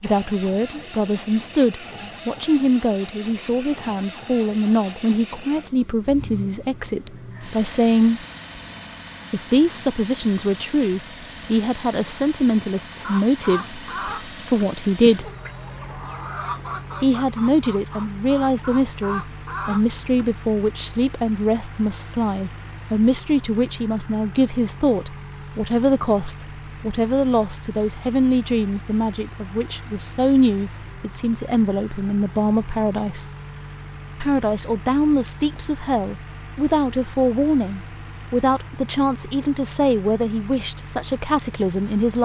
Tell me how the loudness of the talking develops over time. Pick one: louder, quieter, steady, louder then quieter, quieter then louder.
steady.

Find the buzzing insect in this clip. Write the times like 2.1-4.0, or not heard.
not heard.